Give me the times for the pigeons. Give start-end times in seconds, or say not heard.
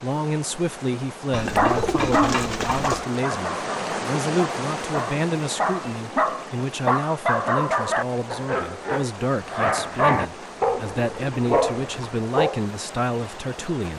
1.3-3.0, 10.7-12.1.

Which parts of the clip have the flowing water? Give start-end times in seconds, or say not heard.
0.0-13.9.